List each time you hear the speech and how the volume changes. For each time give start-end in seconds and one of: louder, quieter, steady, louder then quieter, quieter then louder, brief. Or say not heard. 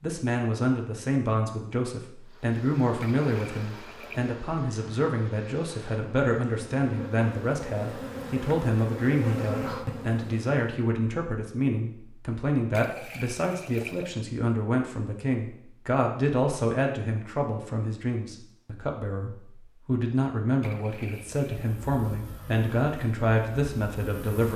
0.0-24.5 steady.